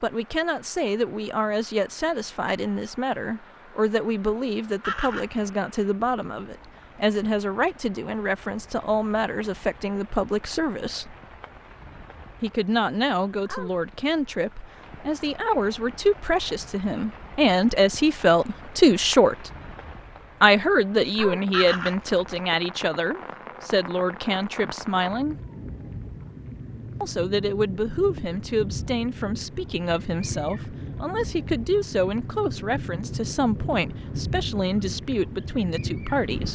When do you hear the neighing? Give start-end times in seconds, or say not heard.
4.8-5.4, 21.5-22.4.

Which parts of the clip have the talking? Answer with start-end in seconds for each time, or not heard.
0.0-11.2, 12.4-19.5, 20.4-25.4, 27.0-36.5.